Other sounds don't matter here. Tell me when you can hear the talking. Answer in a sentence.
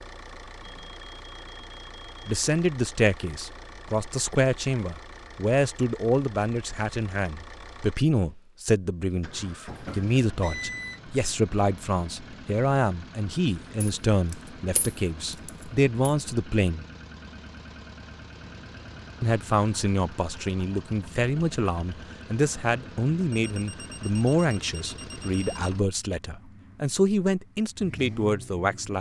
The talking can be heard from 2.2 to 16.9 s and from 19.2 to 28.9 s.